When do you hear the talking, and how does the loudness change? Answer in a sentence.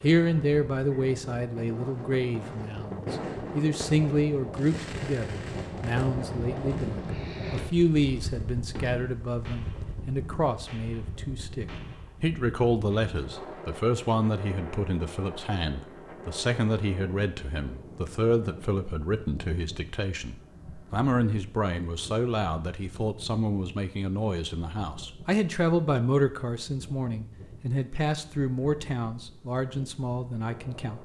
The talking can be heard from 0.0 to 31.0 s, at a steady volume.